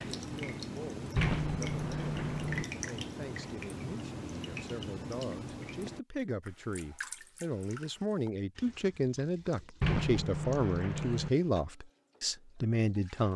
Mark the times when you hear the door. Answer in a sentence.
You can hear the door from 1.1 to 2.6 s and from 9.8 to 11.3 s.